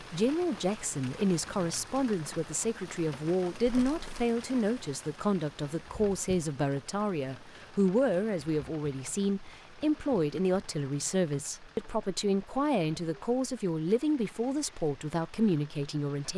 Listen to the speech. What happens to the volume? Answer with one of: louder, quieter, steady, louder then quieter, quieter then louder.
steady.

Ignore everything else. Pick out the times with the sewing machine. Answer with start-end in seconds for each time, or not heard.
not heard.